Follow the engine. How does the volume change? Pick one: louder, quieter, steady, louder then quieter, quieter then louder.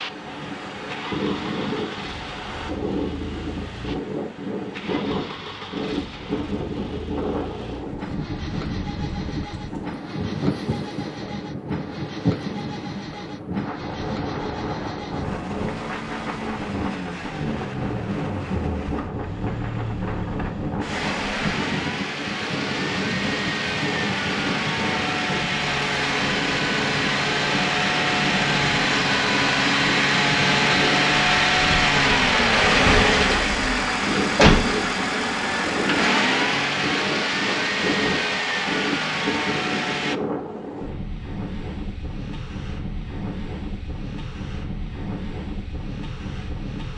louder.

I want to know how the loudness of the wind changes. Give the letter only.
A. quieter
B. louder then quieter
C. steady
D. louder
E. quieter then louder
C.